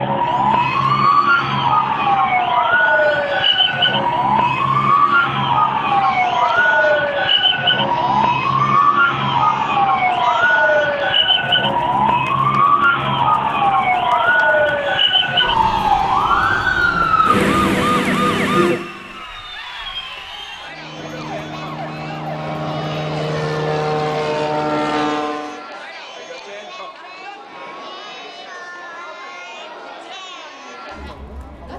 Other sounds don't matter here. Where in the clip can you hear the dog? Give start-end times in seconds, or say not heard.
not heard.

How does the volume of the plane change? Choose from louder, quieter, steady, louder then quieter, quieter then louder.
louder.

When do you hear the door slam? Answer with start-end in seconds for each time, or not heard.
not heard.